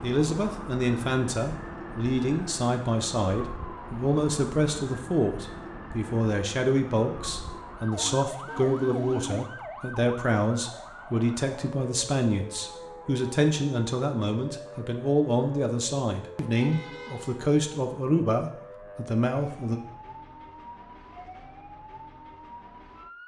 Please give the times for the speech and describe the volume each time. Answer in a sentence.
The speech can be heard from 0.0 to 19.8 s, at a steady volume.